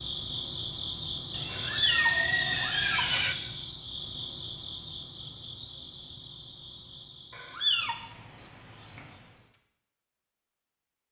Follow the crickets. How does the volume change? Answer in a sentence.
The volume of the crickets goes down.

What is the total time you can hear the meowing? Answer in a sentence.
You can hear the meowing for 2 seconds altogether.